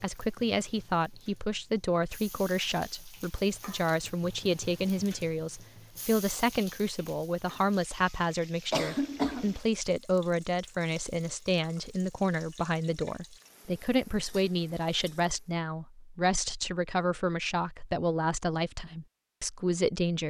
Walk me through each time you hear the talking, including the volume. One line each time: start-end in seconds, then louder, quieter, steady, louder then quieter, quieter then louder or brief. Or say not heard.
0.0-20.2 steady.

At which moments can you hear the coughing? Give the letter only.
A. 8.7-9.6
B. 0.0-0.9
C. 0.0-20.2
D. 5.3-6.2
A.